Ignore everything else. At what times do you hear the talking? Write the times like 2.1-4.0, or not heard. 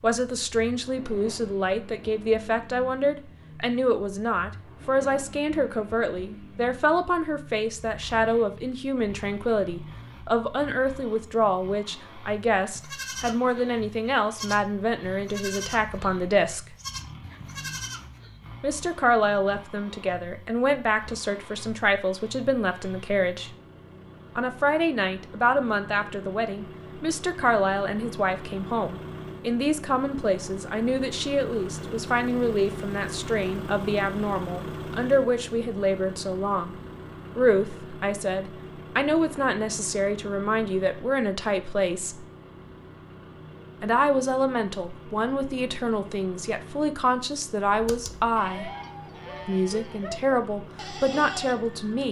0.0-16.6, 18.6-23.5, 24.4-36.8, 37.4-42.2, 43.8-48.7, 49.5-52.0.